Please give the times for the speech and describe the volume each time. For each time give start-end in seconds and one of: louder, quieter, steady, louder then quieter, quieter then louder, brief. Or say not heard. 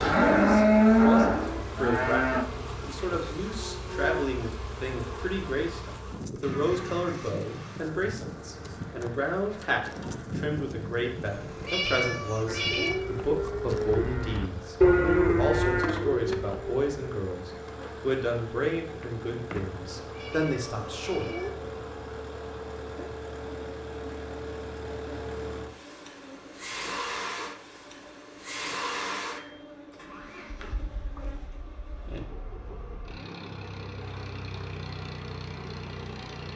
0.0-21.4 steady.